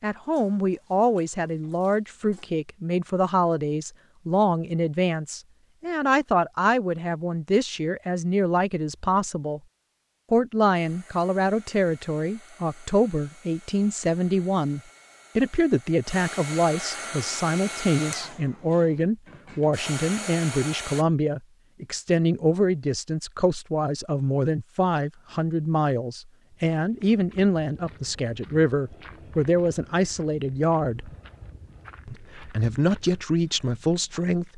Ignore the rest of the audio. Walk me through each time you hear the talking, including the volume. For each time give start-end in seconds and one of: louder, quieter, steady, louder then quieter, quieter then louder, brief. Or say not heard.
0.0-9.6 steady
10.3-31.1 steady
32.0-34.5 brief.